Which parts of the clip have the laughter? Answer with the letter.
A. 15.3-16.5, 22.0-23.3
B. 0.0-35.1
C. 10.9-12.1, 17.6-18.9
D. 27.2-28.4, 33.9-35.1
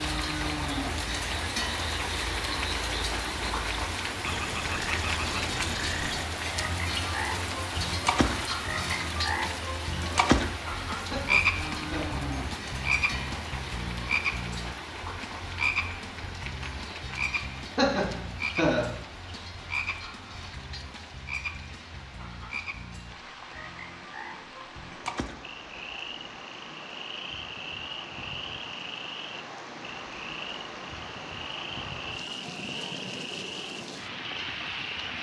C.